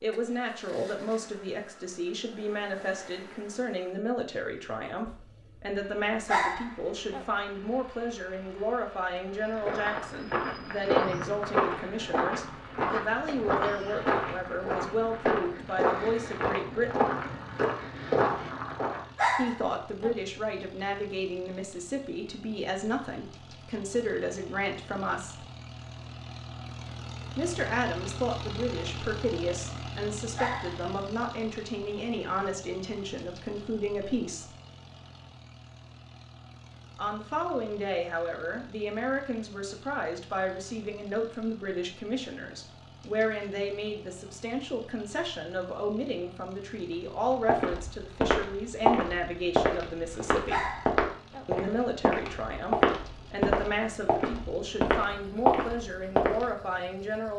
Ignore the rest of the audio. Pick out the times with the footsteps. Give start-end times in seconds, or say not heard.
9.6-19.1, 47.5-56.5.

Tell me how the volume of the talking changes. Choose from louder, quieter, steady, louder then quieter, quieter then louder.
steady.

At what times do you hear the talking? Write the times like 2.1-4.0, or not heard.
0.0-17.1, 19.4-25.4, 27.4-34.5, 37.0-50.8, 51.5-57.3.